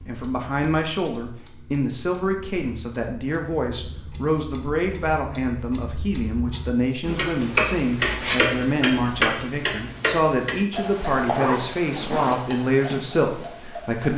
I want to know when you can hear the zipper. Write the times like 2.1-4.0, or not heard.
11.2-12.4.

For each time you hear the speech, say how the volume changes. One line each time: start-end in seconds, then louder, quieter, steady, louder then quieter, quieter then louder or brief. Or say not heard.
0.0-14.1 steady.